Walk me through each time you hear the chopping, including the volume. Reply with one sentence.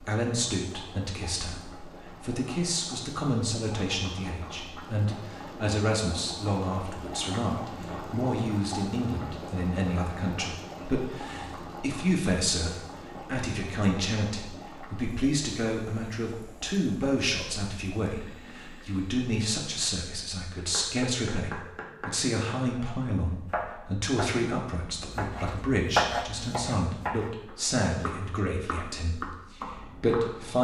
The chopping can be heard from 20.6 to 30.5 s, getting louder then quieter.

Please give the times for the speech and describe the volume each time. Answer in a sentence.
The speech can be heard from 0.0 to 30.5 s, at a steady volume.